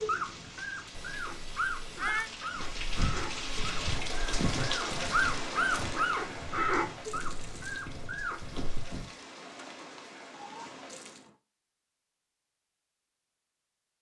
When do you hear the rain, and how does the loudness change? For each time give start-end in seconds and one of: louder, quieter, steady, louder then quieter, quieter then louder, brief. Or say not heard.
0.0-11.3 louder then quieter.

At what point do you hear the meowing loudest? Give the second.
2 s.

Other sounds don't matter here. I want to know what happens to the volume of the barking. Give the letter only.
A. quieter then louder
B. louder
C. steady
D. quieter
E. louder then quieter
E.